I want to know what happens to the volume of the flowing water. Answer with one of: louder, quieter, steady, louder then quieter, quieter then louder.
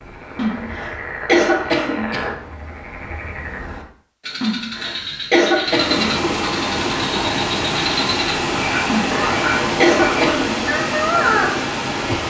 steady.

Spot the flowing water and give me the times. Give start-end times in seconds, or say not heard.
5.7-12.2.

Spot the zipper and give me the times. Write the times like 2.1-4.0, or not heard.
not heard.